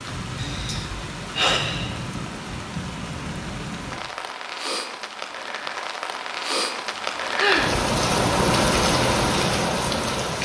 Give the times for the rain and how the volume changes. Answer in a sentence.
You can hear the rain from 0.0 to 10.4 s, getting louder.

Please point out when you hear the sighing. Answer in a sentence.
You can hear the sighing from 0.3 to 2.0 s and from 7.3 to 7.8 s.